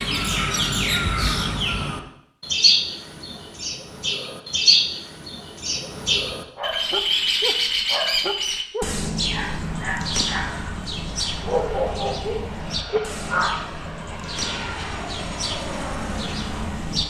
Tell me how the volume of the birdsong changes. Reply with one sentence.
The loudness of the birdsong goes down.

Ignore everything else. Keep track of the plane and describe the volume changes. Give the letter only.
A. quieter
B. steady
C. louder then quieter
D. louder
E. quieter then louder
D.